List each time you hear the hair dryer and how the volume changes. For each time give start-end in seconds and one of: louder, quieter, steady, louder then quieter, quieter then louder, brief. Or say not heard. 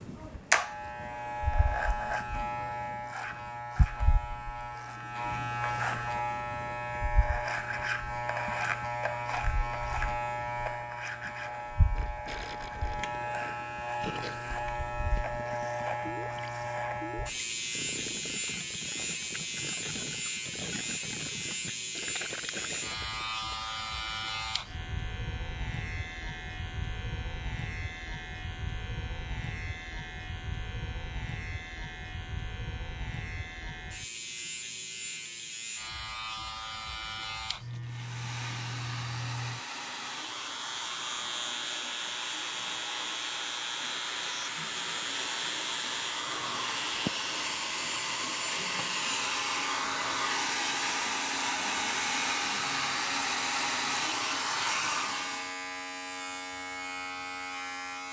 37.8-55.5 louder.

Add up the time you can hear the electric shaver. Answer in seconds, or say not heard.
58 s.